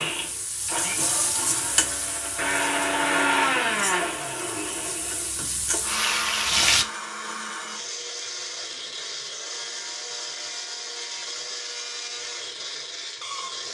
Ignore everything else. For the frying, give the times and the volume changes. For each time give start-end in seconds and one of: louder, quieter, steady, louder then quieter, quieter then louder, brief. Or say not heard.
0.0-6.8 quieter then louder.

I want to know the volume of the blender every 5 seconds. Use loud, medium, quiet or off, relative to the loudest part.
loud, medium, medium.